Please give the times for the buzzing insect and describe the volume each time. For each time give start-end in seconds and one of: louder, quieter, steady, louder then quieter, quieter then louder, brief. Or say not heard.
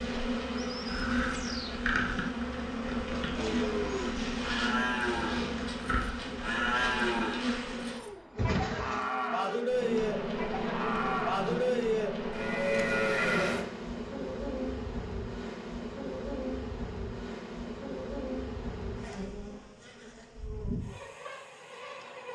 0.0-22.2 quieter.